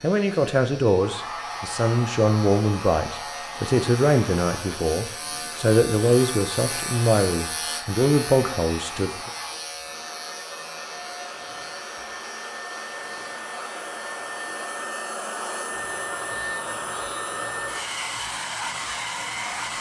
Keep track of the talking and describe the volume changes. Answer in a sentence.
The volume of the talking stays about the same.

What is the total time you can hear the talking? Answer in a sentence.
You can hear the talking for 9 seconds altogether.